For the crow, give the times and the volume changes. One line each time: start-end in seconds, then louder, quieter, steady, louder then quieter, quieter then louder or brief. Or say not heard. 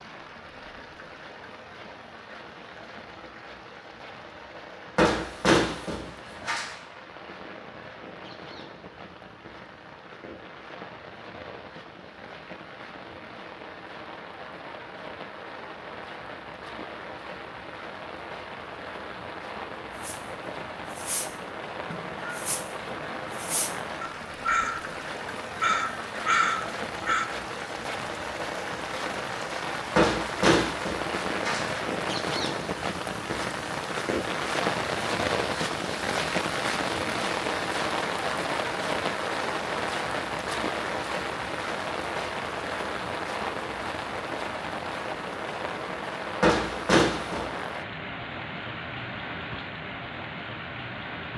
19.9-24.8 louder
25.6-27.2 brief.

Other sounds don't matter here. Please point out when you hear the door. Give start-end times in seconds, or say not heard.
5.0-6.7, 29.9-31.7, 46.4-47.5.